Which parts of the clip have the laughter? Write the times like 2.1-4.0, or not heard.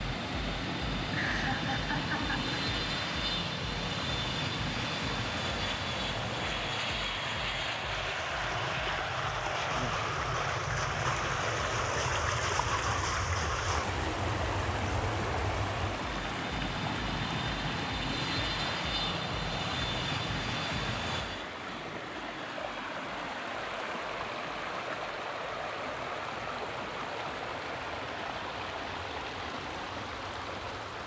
1.1-2.5.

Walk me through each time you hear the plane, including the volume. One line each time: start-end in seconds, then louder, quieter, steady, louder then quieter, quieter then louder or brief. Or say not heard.
0.0-31.0 quieter.